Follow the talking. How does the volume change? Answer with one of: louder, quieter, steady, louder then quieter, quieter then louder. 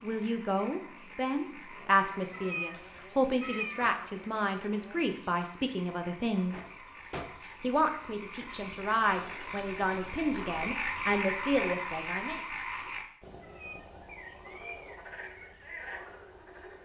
steady.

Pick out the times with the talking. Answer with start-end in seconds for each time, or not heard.
0.0-6.6, 7.6-12.4.